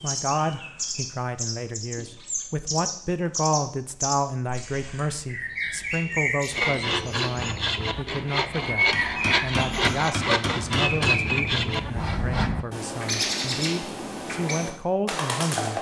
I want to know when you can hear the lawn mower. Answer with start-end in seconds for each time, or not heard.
not heard.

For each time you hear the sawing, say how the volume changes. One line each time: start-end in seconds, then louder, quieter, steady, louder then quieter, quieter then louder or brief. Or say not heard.
6.5-12.7 steady.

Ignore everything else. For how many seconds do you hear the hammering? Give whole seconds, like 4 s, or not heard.
2 s.